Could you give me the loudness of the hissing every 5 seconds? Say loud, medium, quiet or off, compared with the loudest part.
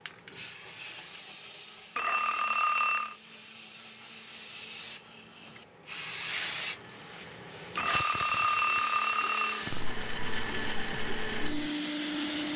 medium, loud, loud.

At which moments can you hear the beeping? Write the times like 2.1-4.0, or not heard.
1.9-3.1, 7.8-9.7.